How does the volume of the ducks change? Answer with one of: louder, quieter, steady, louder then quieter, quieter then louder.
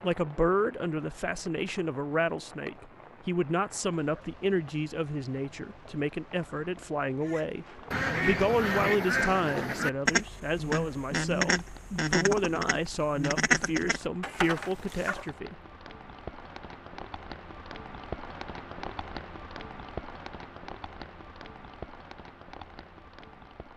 steady.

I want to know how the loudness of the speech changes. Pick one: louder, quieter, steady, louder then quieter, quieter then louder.
steady.